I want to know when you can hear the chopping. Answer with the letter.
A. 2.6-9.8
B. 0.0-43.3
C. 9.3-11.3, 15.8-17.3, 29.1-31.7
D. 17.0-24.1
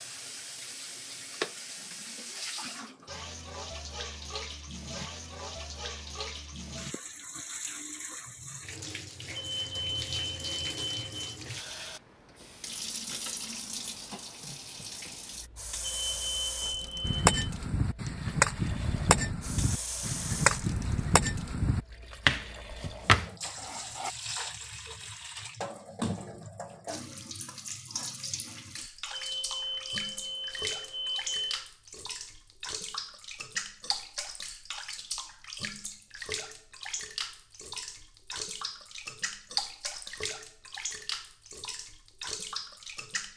D.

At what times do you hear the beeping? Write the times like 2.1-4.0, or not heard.
9.3-11.3, 15.8-17.3, 29.1-31.7.